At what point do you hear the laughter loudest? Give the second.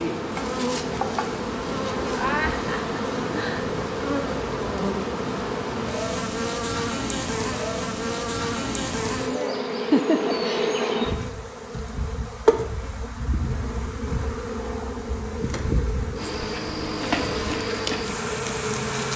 10 s.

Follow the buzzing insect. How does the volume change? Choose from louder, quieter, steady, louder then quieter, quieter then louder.
steady.